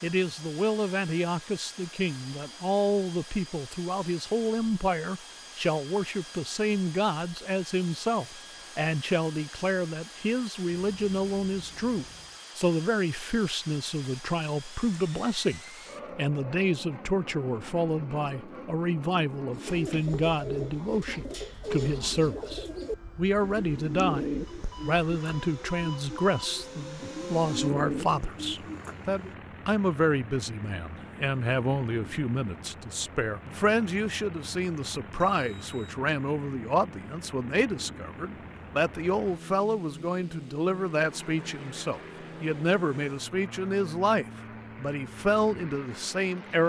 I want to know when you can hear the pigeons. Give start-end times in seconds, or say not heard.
19.5-29.4.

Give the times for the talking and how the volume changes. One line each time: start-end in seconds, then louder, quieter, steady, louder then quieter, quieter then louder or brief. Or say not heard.
0.0-46.6 steady.